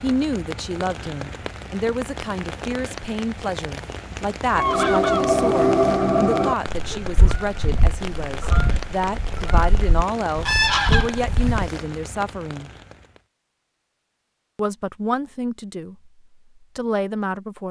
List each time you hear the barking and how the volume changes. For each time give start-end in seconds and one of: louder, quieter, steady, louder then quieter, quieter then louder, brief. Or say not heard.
not heard.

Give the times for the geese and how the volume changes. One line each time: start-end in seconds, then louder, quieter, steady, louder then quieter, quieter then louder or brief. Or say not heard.
4.5-11.7 quieter then louder.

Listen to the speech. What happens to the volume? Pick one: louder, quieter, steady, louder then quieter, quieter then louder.
steady.